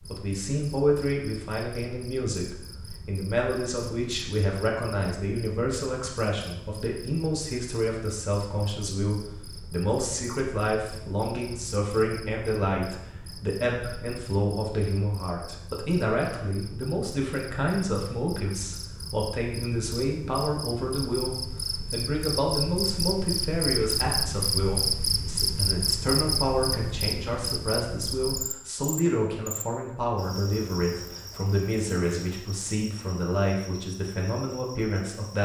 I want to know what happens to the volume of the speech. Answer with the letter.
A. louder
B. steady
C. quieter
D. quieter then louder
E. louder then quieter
B.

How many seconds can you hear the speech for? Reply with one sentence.
The speech can be heard for 35 seconds in total.